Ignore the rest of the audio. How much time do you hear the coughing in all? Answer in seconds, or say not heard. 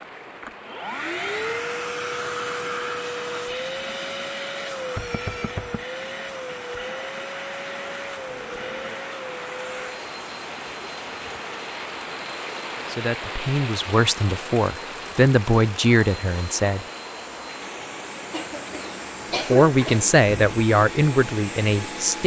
3 s.